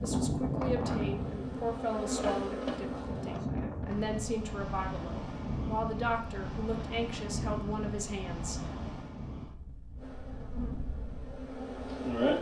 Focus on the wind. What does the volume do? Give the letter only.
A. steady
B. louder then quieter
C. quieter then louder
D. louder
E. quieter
E.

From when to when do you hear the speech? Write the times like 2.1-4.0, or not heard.
0.0-8.7.